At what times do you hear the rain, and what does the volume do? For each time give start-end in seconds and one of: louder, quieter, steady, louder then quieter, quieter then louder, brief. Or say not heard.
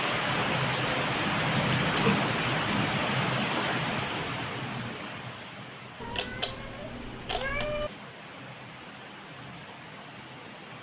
0.0-10.7 quieter.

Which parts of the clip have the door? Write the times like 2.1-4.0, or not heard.
not heard.